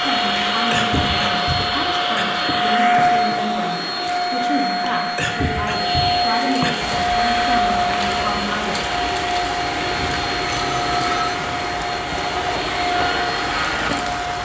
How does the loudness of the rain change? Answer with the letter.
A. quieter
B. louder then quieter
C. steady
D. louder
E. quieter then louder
C.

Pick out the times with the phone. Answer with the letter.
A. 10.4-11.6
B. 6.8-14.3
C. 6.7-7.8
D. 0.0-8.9
A.